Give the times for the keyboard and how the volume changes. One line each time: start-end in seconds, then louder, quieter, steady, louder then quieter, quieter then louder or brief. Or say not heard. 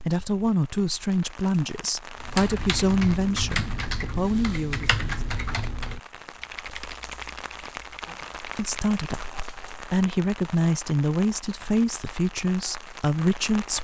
2.1-9.0 quieter.